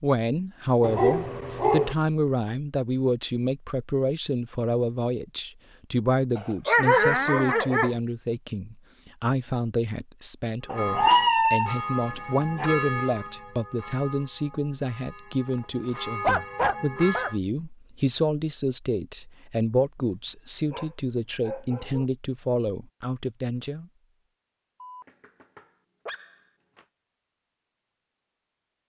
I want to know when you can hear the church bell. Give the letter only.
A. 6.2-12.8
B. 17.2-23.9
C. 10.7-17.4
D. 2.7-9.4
C.